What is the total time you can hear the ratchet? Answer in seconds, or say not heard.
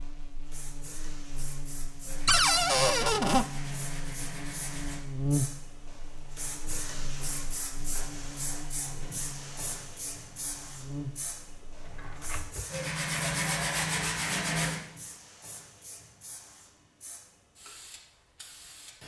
not heard.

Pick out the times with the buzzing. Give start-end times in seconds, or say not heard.
0.0-12.5.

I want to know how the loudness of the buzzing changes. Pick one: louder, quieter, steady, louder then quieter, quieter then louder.
louder then quieter.